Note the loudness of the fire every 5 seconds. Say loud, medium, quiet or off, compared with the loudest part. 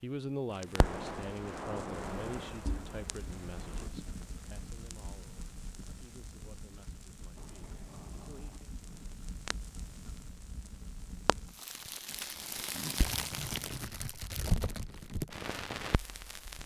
loud, medium, loud, loud.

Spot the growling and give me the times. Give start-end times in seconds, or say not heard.
7.3-9.1.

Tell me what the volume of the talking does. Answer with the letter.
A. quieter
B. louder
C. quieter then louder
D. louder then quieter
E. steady
A.